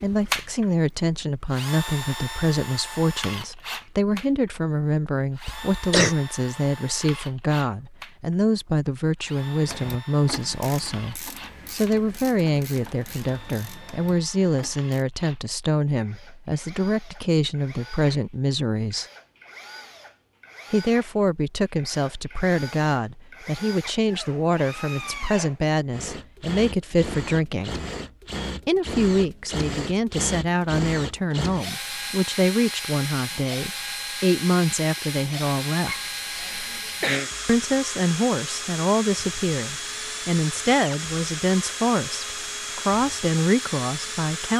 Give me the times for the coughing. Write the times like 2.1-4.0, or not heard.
5.5-6.2, 35.9-37.3.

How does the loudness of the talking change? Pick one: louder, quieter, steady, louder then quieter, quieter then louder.
steady.